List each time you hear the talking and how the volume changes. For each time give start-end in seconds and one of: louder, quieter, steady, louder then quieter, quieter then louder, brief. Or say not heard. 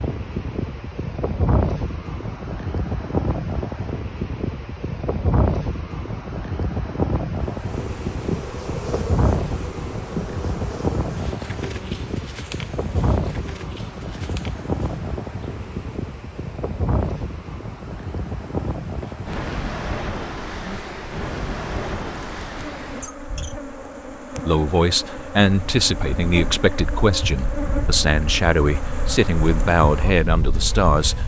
24.4-31.2 steady.